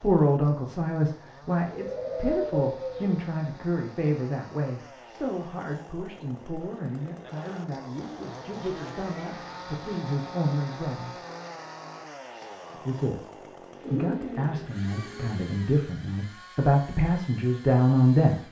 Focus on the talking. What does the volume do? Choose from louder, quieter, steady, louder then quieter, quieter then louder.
quieter then louder.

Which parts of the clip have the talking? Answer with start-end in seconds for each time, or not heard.
0.0-11.2, 12.7-18.4.